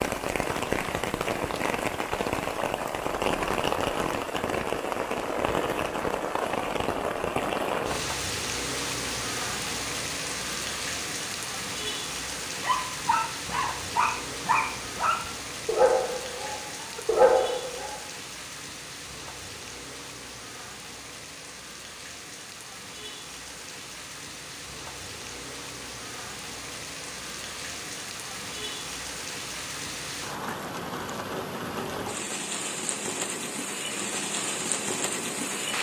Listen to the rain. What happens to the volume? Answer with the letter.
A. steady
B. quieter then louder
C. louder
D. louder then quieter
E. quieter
B.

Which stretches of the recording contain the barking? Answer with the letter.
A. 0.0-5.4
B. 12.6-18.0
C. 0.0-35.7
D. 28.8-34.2
B.